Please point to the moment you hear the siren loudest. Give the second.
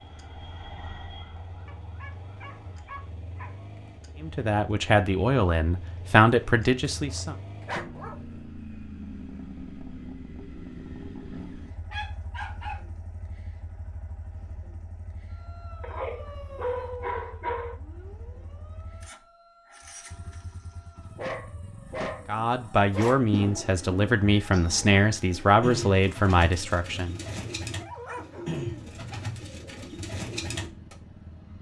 17 s.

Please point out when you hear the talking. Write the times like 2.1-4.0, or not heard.
4.2-7.3, 22.2-27.1.